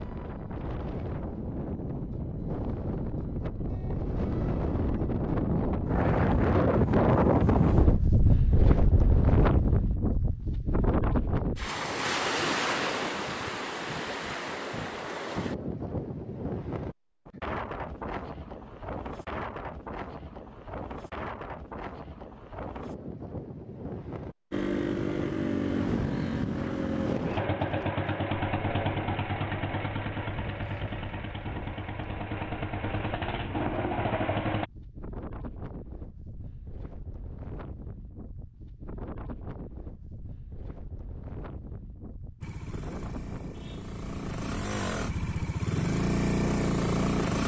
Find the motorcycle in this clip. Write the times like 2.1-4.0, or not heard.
24.5-34.7, 42.4-47.4.